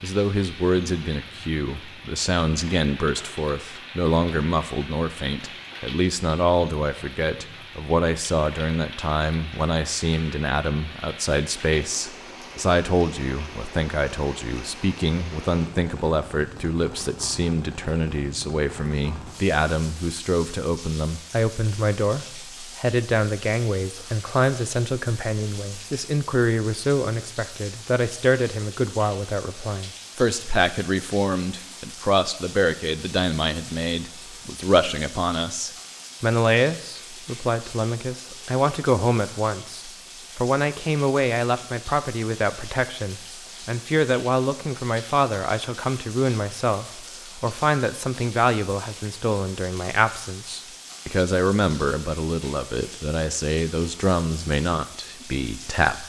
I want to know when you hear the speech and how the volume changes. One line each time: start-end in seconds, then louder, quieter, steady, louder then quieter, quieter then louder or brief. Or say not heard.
0.0-56.0 steady.